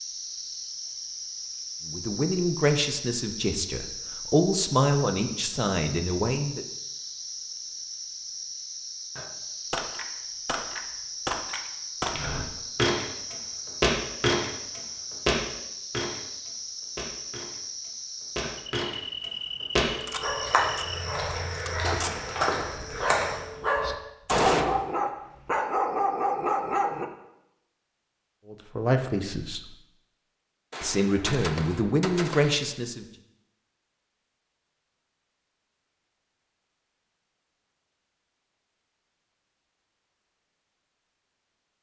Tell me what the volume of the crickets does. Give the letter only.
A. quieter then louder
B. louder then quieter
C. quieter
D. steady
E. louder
D.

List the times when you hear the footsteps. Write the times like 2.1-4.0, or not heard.
12.1-23.4.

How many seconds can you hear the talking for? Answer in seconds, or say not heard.
8 s.